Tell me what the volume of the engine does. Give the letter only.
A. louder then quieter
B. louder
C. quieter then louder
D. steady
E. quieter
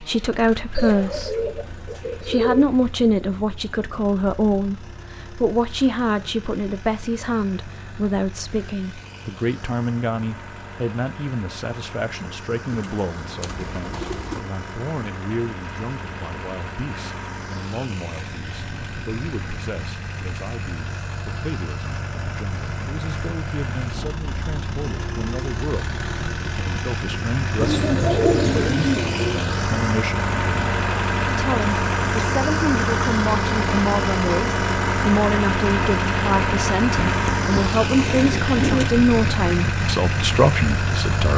B.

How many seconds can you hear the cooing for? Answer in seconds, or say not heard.
7 s.